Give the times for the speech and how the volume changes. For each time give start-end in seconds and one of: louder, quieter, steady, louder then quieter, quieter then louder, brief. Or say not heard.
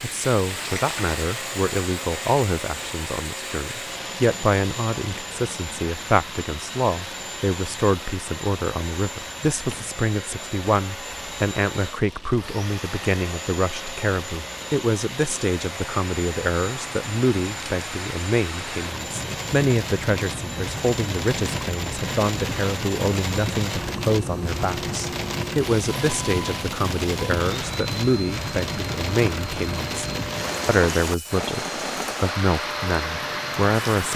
0.0-34.1 steady.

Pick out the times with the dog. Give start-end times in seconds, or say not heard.
not heard.